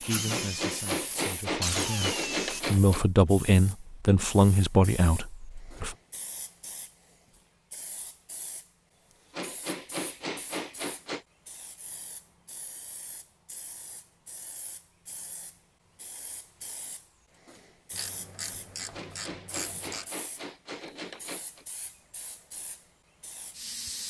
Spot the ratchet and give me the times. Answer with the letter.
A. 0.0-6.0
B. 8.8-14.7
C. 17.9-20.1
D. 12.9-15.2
C.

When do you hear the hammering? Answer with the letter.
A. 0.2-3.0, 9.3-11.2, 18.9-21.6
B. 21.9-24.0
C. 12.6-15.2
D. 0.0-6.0
A.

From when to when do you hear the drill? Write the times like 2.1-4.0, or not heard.
0.0-2.6.